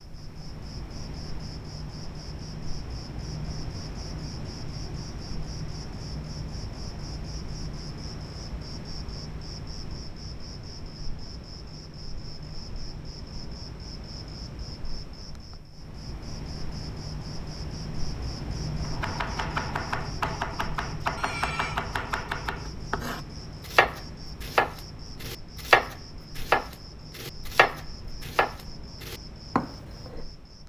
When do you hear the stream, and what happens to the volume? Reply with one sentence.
You can't hear the stream here.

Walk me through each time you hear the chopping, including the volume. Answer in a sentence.
The chopping can be heard from 18.8 to 30.2 s, getting louder then quieter.